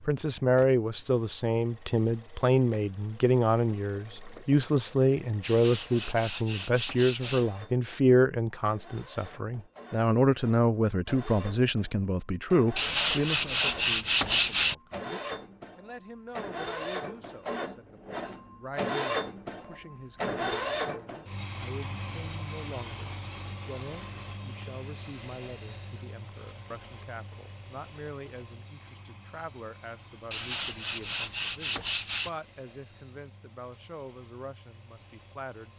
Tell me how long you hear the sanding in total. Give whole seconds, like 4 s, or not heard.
6 s.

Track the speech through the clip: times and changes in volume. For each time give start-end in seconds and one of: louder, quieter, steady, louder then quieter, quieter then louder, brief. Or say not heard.
0.1-35.7 quieter.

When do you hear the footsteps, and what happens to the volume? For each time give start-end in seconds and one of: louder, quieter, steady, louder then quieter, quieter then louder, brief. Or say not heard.
not heard.